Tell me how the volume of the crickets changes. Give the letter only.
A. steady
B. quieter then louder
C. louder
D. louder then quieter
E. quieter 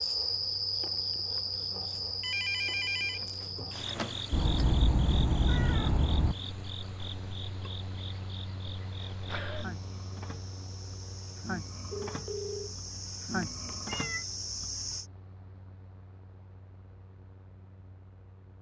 B.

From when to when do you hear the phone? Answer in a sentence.
You can hear the phone from 2.2 to 4.2 s and from 11.9 to 12.8 s.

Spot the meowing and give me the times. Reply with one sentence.
You can hear the meowing from 4.3 to 6.3 s and from 13.2 to 14.2 s.